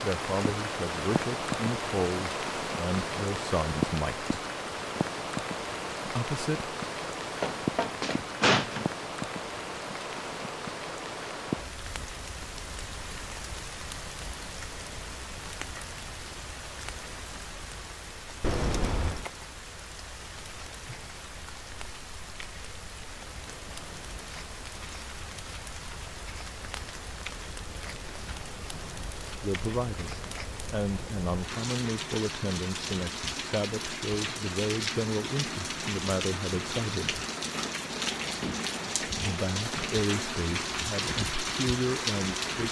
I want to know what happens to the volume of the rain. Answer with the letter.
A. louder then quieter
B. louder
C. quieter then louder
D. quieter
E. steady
C.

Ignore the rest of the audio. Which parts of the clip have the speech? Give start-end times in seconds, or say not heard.
0.0-4.3, 6.0-6.8, 29.4-37.2, 39.1-42.6.